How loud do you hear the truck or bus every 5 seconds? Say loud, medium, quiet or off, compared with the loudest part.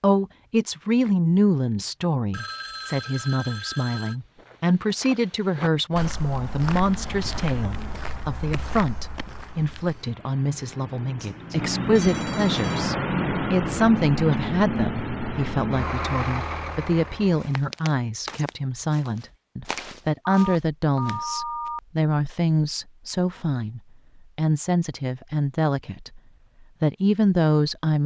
off, quiet, loud, loud, off, off.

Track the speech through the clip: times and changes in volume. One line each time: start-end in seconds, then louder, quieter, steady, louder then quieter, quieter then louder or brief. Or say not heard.
0.0-26.2 steady
26.8-28.0 brief.